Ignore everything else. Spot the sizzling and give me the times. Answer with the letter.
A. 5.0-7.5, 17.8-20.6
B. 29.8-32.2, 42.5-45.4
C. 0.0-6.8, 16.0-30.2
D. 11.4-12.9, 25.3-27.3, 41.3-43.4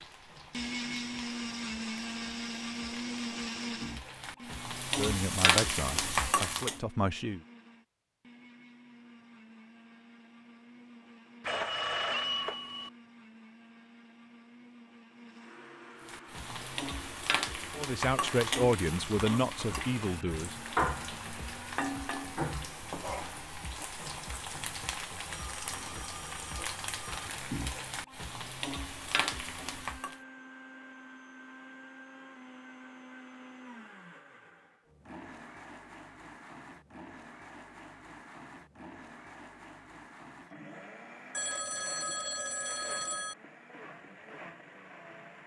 C.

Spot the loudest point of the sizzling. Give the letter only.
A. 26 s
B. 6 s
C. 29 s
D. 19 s
B.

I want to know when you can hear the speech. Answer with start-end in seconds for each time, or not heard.
5.0-7.5, 17.8-20.6.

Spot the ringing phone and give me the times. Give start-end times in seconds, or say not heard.
11.4-12.9, 25.3-27.3, 41.3-43.4.